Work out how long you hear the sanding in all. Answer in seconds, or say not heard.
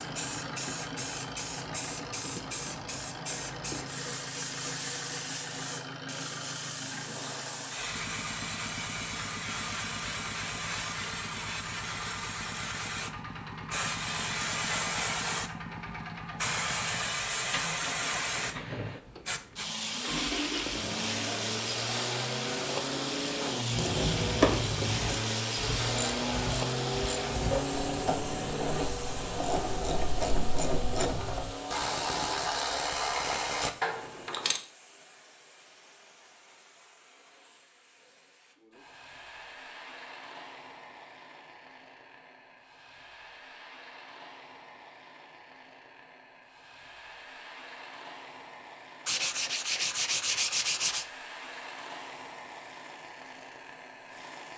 2 s.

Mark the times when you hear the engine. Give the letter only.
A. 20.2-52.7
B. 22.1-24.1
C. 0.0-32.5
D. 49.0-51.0
C.